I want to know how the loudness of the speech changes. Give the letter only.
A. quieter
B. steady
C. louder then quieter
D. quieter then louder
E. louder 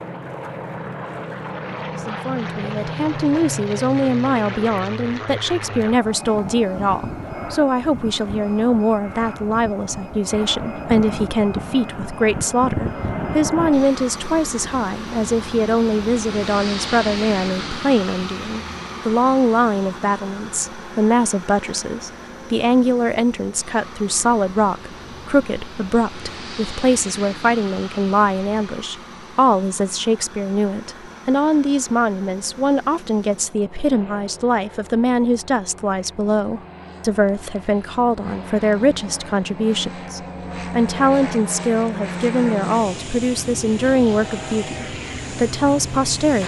B.